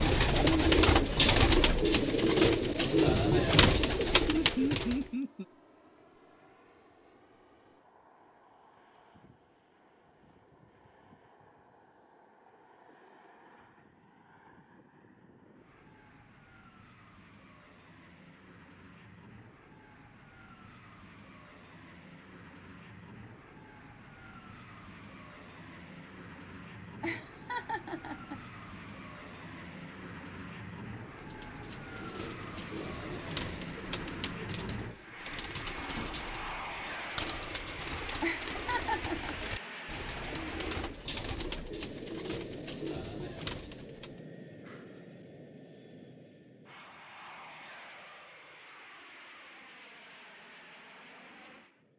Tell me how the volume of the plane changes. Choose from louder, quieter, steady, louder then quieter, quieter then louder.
louder then quieter.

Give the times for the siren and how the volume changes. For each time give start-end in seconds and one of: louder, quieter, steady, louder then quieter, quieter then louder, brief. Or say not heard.
not heard.